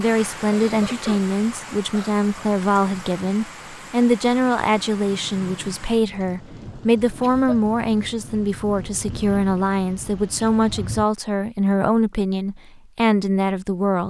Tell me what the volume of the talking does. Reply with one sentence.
The loudness of the talking stays about the same.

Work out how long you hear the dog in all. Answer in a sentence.
The dog can't be heard in this clip.